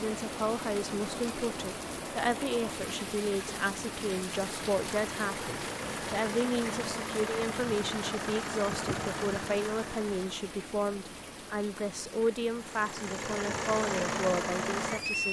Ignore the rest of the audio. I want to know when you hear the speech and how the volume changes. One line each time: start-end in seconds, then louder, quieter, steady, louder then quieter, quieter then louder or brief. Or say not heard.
0.0-15.2 steady.